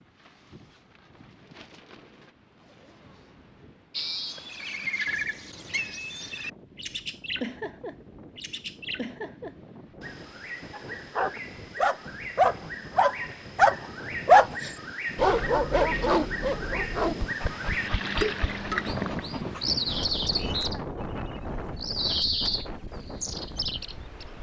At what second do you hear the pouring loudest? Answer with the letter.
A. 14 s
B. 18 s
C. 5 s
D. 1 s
B.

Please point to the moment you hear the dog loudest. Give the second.
14 s.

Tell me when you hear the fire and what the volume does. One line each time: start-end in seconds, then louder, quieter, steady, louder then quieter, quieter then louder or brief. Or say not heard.
not heard.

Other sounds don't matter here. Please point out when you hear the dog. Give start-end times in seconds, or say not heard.
10.7-20.7.